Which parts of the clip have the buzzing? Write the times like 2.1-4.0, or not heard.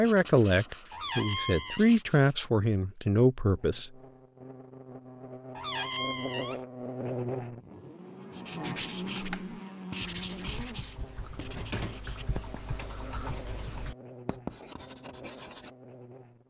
3.5-16.4.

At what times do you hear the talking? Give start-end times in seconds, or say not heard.
0.0-3.9.